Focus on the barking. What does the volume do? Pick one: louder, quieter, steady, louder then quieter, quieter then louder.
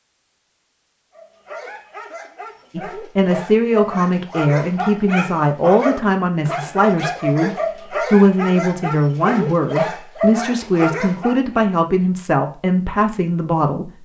louder.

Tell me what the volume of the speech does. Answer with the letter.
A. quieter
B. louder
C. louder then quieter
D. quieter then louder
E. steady
E.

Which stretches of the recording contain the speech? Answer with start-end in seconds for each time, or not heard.
2.8-14.0.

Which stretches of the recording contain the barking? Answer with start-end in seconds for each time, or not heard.
1.1-11.6.